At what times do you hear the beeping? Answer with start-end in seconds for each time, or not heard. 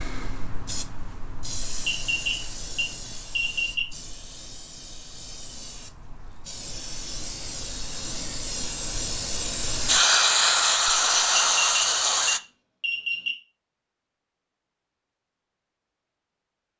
1.9-3.9, 11.6-13.3.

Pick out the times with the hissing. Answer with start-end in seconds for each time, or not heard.
0.0-12.4.